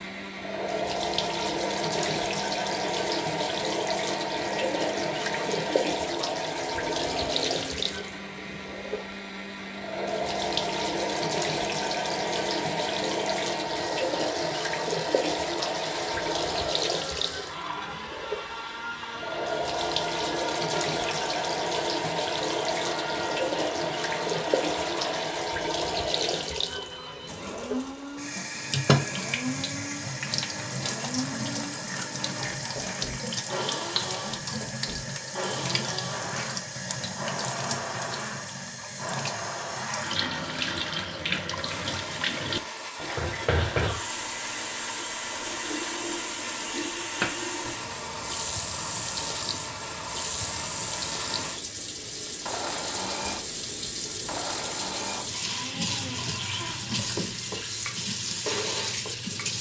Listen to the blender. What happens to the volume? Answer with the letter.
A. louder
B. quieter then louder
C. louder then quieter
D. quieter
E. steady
E.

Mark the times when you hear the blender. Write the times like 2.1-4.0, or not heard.
0.0-59.4.